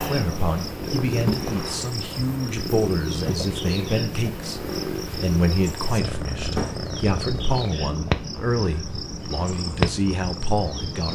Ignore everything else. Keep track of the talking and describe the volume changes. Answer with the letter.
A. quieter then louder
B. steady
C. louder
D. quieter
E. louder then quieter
B.